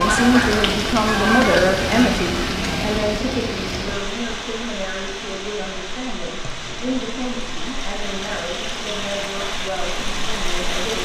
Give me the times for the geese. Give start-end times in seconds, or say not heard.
0.0-3.0.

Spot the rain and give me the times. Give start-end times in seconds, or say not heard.
0.0-11.0.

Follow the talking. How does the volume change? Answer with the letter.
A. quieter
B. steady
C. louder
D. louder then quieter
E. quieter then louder
A.